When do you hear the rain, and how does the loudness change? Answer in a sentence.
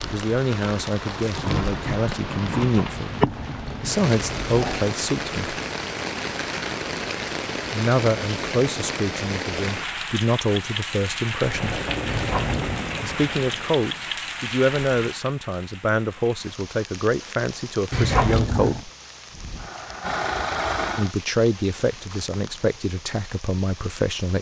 The rain can be heard from 0.0 to 24.3 s, getting quieter.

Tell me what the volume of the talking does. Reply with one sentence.
The volume of the talking stays about the same.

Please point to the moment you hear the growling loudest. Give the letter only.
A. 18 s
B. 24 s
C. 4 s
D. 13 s
A.